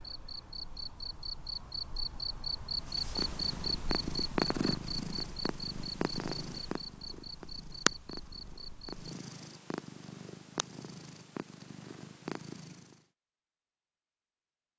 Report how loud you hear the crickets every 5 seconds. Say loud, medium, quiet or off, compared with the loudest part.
loud, medium, off.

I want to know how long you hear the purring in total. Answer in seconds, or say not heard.
10 s.